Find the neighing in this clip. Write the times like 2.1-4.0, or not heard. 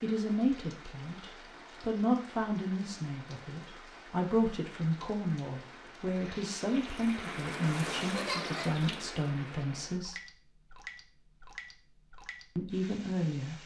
7.6-9.0.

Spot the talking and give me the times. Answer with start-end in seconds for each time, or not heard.
0.0-10.2, 12.6-13.6.